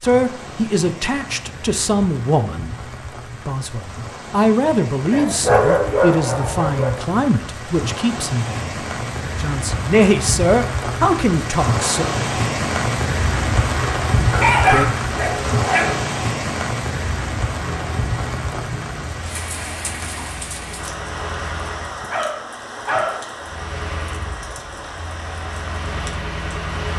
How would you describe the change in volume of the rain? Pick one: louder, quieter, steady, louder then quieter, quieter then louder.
louder then quieter.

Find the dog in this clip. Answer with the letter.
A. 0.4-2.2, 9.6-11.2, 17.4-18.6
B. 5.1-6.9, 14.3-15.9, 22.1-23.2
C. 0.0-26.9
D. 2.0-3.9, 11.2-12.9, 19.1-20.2
B.